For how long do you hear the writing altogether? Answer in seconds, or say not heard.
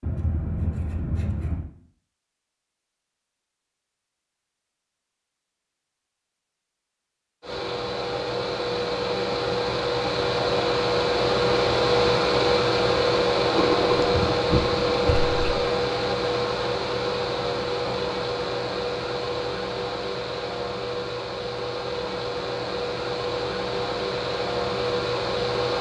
4 s.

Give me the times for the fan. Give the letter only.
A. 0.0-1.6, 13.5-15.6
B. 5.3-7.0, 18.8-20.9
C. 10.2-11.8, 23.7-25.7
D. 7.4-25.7
D.